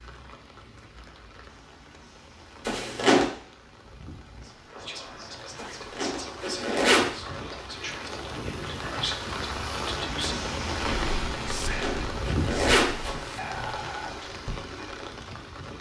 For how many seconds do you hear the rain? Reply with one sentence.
You can hear the rain for 16 seconds altogether.